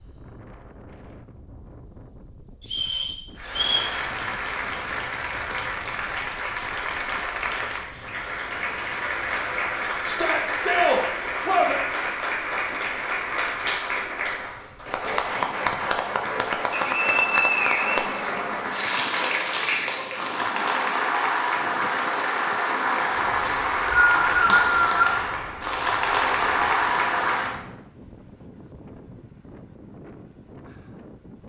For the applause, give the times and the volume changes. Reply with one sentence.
You can hear the applause from 3.4 to 27.6 s, getting louder.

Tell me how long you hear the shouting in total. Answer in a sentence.
You can hear the shouting for 2 seconds altogether.